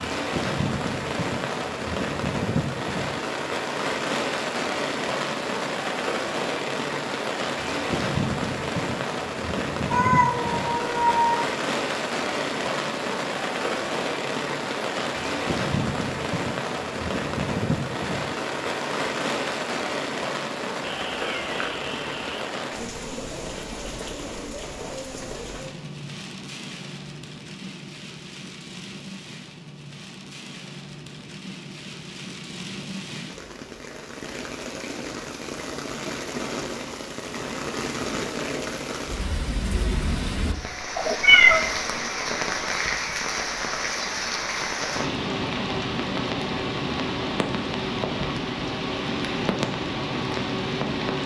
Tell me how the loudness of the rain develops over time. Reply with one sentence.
The loudness of the rain goes down, then up.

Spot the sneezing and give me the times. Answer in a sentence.
You can't hear the sneezing here.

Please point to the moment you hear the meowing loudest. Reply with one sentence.
The loudest moment of the meowing is at 41 seconds.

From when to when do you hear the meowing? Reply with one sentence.
The meowing can be heard from 9.9 to 11.4 s, from 20.9 to 22.4 s and from 41.0 to 41.6 s.